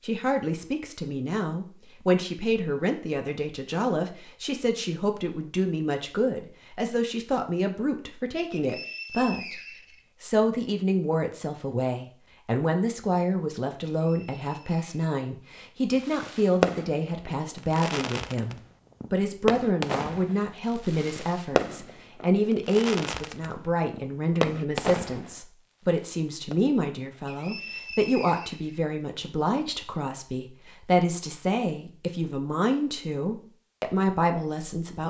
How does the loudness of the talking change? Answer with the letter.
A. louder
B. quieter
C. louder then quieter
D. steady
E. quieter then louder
D.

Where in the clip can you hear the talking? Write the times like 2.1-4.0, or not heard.
0.0-9.6, 10.2-35.0.